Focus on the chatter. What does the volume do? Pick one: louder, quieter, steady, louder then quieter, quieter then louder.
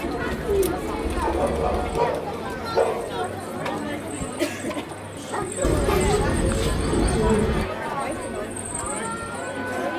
steady.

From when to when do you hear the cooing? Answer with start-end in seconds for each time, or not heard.
0.0-1.8, 5.6-7.7.